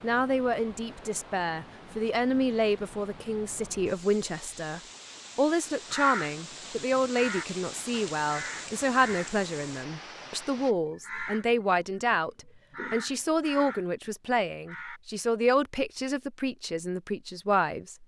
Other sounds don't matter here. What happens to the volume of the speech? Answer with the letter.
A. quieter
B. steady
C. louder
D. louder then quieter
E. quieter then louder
B.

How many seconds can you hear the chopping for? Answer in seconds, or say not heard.
not heard.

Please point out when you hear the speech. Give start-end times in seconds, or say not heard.
0.0-12.3, 12.9-18.0.